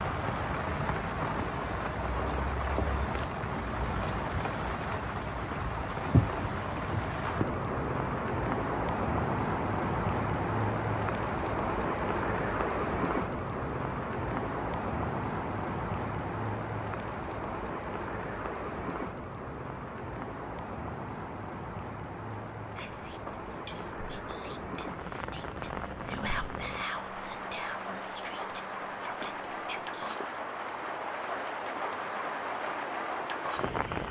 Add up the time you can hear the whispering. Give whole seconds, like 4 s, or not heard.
8 s.